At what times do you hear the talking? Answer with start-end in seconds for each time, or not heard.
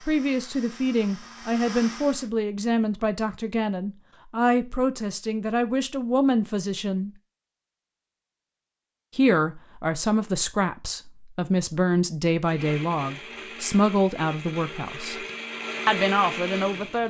0.1-7.1, 9.2-15.2, 15.8-17.0.